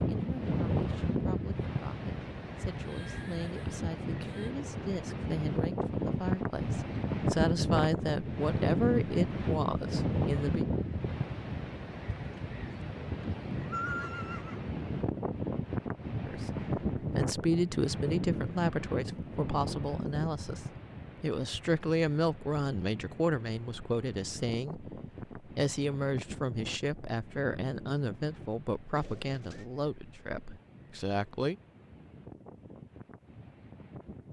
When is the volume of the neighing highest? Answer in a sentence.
The volume of the neighing peaks at 14 seconds.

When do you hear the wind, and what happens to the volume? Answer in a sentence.
The wind can be heard from 0.0 to 34.2 s, getting quieter.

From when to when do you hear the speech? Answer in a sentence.
You can hear the speech from 0.0 to 10.7 s and from 16.2 to 31.6 s.